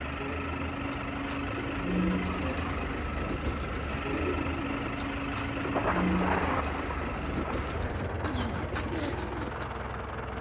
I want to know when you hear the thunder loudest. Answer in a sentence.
The volume of the thunder peaks at 6 seconds.